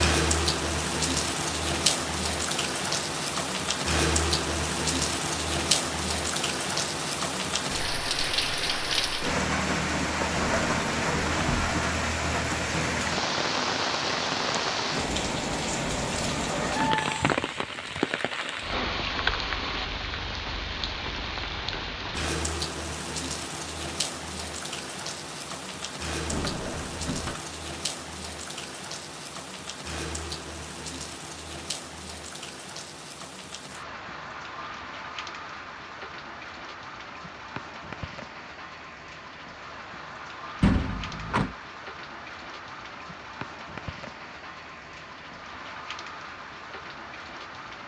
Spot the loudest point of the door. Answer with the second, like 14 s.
41 s.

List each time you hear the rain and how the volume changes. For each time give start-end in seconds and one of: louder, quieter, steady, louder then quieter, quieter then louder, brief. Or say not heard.
0.0-47.8 quieter.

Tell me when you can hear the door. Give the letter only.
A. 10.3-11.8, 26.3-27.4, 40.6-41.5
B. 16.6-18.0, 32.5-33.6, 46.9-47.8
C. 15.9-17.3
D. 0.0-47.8
A.